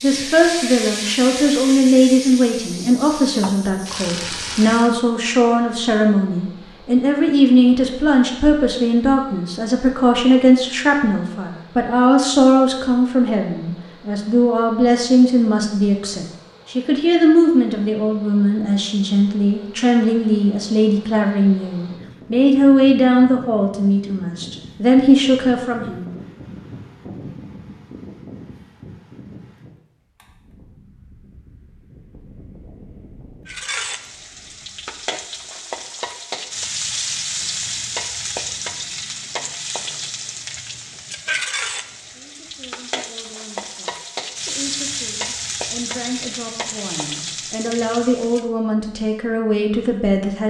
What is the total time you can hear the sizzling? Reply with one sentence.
You can hear the sizzling for 20 seconds altogether.